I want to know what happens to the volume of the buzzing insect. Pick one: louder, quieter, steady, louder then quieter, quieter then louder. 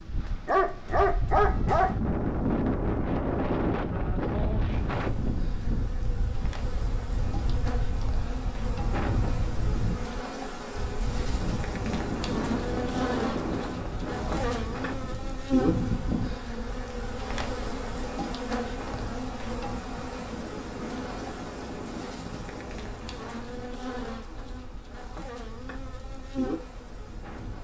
louder then quieter.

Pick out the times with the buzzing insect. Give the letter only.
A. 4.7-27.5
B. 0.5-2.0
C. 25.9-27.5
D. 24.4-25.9
A.